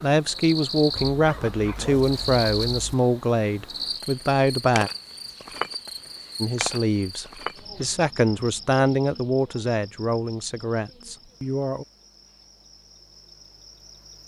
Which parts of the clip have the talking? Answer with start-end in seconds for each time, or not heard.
0.0-4.9, 6.4-11.8.